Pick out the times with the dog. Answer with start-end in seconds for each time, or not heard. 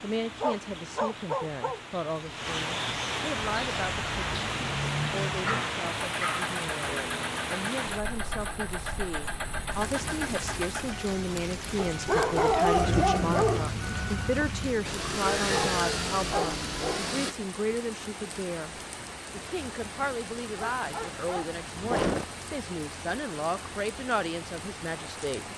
0.4-1.8, 5.5-6.5, 11.8-13.8, 15.5-17.1, 20.6-22.2.